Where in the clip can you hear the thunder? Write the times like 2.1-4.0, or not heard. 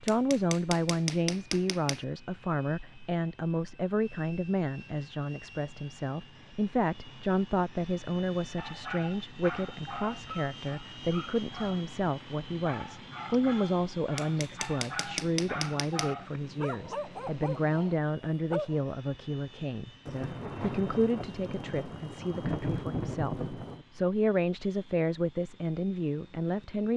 20.1-23.9.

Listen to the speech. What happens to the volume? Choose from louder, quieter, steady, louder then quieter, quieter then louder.
steady.